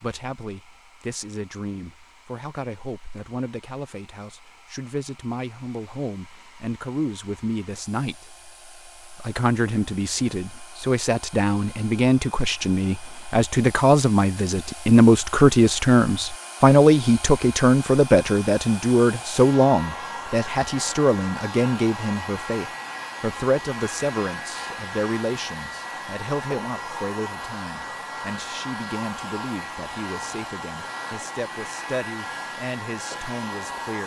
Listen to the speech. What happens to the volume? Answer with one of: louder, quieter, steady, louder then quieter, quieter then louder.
louder then quieter.